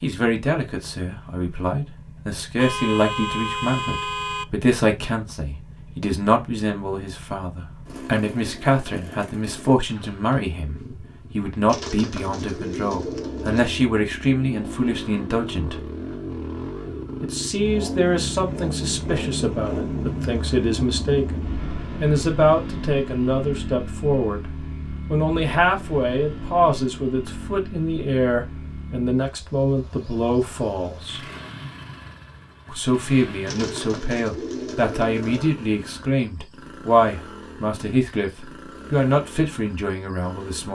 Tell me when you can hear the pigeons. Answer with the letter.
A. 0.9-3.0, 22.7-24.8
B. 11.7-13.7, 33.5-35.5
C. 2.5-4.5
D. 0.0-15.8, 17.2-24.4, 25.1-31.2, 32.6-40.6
B.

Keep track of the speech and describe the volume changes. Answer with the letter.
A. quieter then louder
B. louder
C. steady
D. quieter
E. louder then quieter
C.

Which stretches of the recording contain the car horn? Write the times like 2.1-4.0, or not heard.
2.5-4.5.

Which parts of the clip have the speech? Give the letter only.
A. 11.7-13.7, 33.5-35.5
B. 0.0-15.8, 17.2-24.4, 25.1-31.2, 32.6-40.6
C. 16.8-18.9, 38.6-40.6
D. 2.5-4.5
B.